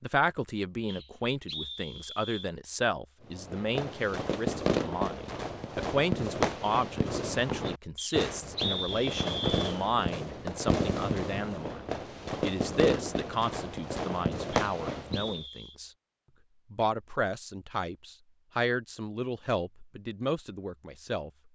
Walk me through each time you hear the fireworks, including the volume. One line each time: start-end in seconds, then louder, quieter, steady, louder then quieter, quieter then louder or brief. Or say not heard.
3.3-15.4 steady.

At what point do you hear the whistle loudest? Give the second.
9 s.